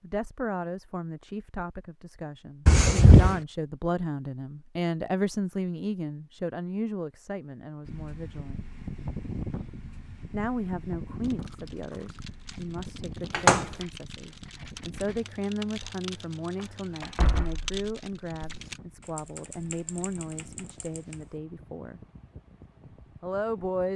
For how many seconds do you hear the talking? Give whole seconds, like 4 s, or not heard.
21 s.